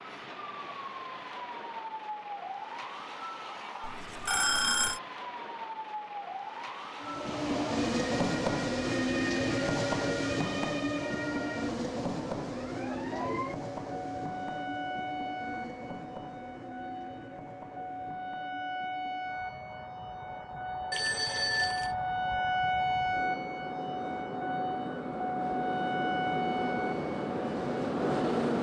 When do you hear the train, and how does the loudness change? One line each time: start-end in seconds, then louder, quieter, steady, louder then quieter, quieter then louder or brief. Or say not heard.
7.0-28.5 quieter then louder.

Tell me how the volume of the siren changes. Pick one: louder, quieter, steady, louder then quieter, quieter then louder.
louder.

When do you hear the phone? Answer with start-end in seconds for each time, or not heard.
3.8-5.0, 20.9-21.9.